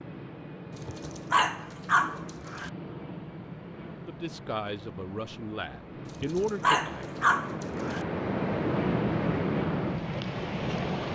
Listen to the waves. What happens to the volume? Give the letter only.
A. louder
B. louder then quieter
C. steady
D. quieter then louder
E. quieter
A.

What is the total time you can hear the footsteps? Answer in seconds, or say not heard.
not heard.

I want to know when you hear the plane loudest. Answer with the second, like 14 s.
9 s.